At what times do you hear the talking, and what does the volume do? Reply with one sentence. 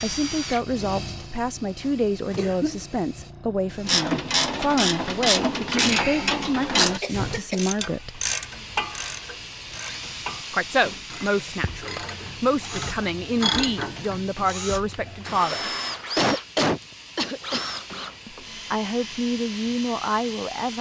The talking can be heard from 0.0 to 8.2 s, at a steady volume; from 10.5 to 15.7 s, at a steady volume; and briefly from 18.2 to 20.7 s.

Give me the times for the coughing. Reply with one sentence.
The coughing can be heard from 1.9 to 3.0 s, from 7.0 to 7.7 s and from 15.9 to 17.6 s.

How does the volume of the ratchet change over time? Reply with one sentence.
The loudness of the ratchet goes down, then up.